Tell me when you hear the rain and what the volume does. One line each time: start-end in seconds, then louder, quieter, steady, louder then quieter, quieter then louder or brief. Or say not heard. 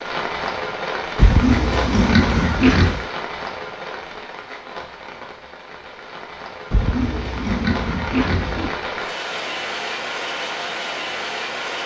0.0-11.8 quieter then louder.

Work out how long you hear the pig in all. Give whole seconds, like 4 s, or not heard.
4 s.